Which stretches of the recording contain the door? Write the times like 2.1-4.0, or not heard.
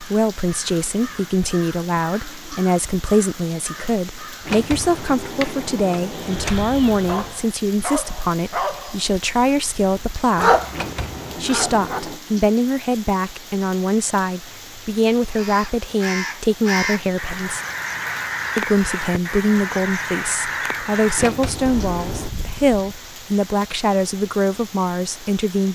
4.5-6.7, 10.7-12.2, 21.1-22.3.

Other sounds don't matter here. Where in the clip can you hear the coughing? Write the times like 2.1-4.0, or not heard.
not heard.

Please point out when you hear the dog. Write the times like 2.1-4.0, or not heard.
7.0-12.0.